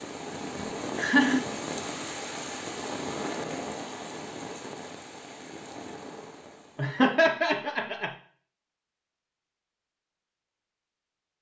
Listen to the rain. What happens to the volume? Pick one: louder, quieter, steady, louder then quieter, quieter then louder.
quieter.